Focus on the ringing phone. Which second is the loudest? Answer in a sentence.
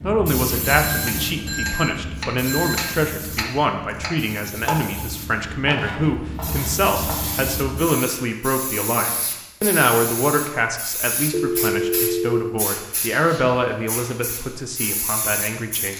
The volume of the ringing phone peaks at 12 seconds.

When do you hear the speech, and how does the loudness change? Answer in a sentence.
The speech can be heard from 0.0 to 15.9 s, at a steady volume.